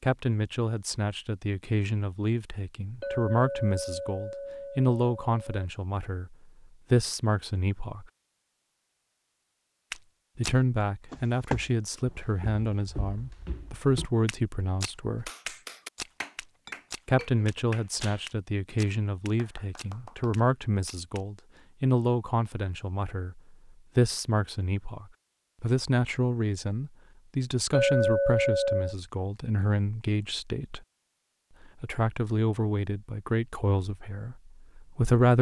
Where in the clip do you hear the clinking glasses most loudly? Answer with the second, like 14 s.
28 s.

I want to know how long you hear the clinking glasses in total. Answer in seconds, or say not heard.
5 s.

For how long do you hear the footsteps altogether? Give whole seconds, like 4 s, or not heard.
11 s.